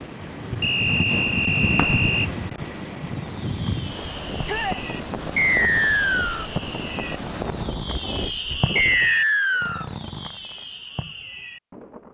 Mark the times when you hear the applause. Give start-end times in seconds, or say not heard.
not heard.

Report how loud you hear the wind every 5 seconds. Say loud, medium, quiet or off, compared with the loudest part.
loud, loud, off.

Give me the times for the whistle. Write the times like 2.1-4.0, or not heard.
0.6-2.3, 5.3-6.5, 8.8-9.8.